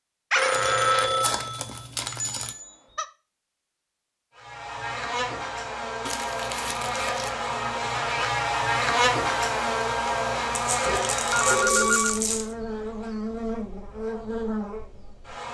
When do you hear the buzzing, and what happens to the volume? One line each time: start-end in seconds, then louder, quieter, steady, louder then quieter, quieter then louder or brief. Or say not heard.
4.3-15.4 louder then quieter.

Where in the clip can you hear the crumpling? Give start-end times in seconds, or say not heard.
0.5-2.5, 6.0-7.3, 10.5-12.6.